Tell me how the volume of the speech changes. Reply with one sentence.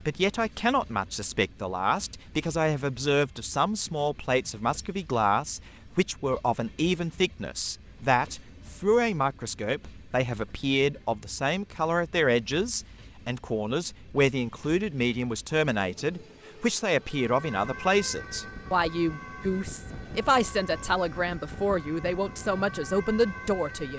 The volume of the speech stays about the same.